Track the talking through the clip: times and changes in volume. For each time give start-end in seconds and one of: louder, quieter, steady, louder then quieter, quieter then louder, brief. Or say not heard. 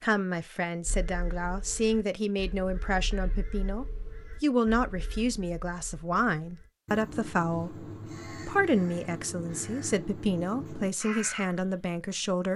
0.0-12.5 steady.